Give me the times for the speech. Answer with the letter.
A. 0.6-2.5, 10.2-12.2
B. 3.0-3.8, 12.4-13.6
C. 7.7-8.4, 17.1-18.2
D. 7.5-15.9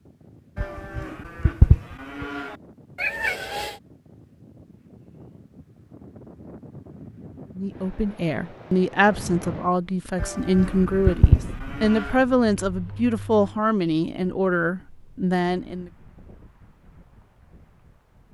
D.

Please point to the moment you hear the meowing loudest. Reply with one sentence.
The loudest moment of the meowing is at 3 seconds.